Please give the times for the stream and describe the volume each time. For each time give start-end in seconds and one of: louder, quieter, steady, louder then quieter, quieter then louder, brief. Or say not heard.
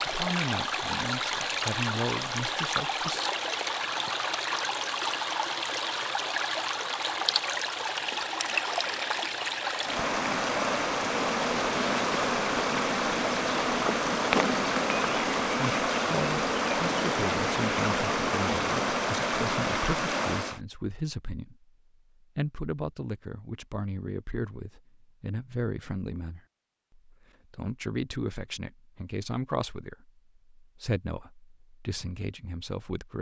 0.0-20.6 steady.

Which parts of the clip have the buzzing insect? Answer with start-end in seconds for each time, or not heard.
10.9-19.1.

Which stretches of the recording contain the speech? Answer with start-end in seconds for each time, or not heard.
0.1-3.2, 15.6-33.1.